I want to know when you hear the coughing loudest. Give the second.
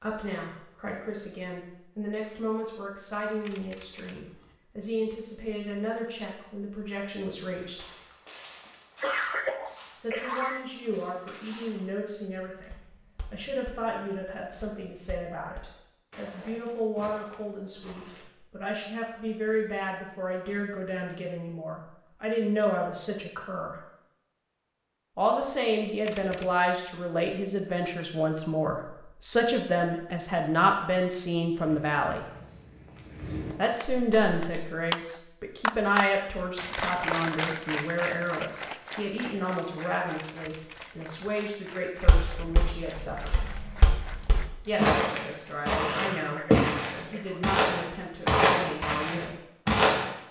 9 s.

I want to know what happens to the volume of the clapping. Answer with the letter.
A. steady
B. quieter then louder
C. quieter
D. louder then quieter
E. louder
C.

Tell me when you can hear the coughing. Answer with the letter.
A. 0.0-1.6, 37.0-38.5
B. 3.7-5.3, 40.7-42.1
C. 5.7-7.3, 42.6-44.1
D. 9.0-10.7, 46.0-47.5
D.